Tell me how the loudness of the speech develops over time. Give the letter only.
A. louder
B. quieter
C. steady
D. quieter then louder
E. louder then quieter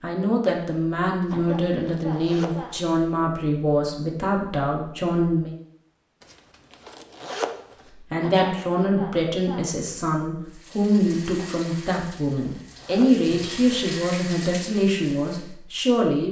C.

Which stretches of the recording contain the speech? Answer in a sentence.
The speech can be heard from 0.0 to 5.5 s and from 8.1 to 16.2 s.